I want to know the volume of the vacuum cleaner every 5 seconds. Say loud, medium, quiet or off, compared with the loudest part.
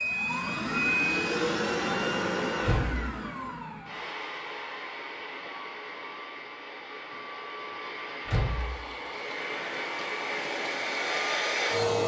loud, medium, loud.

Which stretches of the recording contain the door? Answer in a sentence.
You can hear the door from 2.6 to 3.1 s and from 8.2 to 8.8 s.